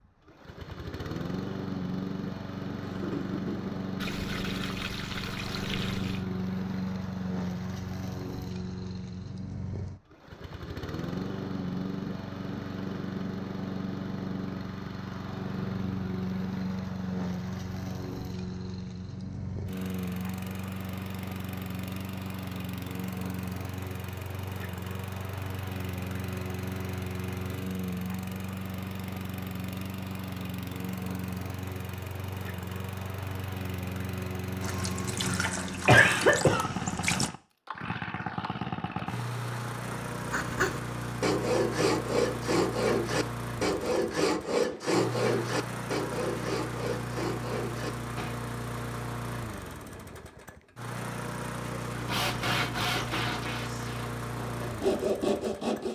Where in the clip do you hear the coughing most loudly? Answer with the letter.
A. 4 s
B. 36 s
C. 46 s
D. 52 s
B.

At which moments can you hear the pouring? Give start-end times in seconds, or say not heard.
4.0-6.2, 34.6-37.3.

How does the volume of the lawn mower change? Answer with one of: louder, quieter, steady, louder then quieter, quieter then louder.
steady.